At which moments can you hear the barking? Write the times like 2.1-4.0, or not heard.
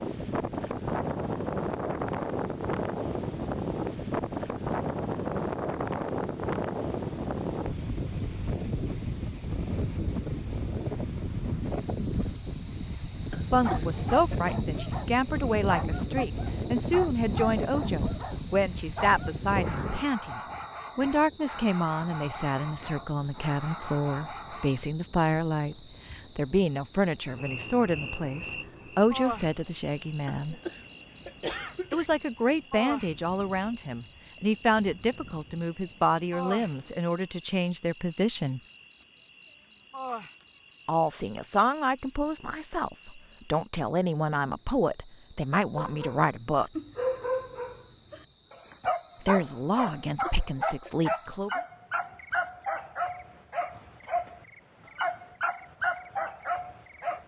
13.6-24.9, 45.8-57.2.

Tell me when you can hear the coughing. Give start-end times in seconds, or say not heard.
13.3-14.6, 30.3-32.1, 50.0-51.1.